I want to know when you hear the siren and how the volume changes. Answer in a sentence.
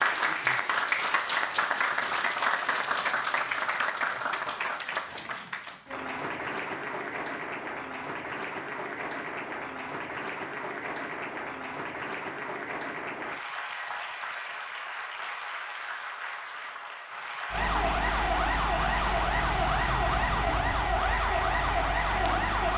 You can hear the siren from 17.5 to 22.7 s, at a steady volume.